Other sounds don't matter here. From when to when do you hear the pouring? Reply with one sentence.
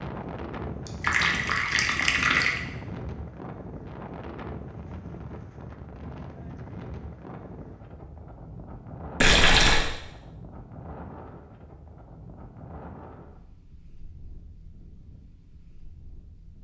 The pouring can be heard from 0.8 to 2.6 s and from 9.2 to 9.9 s.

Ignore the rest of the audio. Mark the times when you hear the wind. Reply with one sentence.
The wind can be heard from 0.0 to 16.5 s.